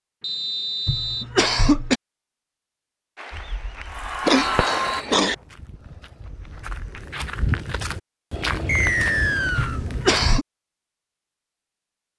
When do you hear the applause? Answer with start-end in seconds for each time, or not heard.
3.1-5.0.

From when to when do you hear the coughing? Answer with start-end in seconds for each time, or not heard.
0.8-1.9, 4.2-5.3, 9.6-10.4.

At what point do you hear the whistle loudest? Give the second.
9 s.